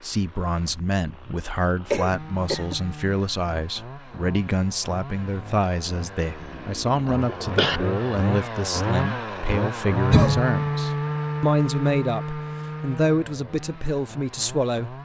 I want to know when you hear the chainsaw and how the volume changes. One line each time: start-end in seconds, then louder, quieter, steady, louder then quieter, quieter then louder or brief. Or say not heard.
0.0-15.0 louder then quieter.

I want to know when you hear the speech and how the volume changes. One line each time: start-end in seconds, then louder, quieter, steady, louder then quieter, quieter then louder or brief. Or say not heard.
0.0-15.0 steady.